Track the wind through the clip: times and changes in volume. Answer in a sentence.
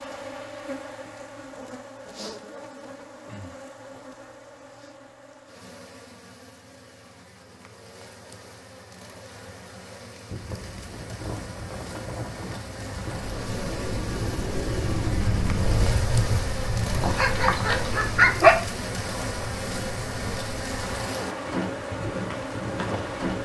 The wind can be heard from 10.2 to 23.4 s, getting louder then quieter.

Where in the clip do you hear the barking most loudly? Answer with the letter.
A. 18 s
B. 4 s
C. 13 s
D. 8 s
A.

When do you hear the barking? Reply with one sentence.
The barking can be heard from 17.0 to 18.6 s.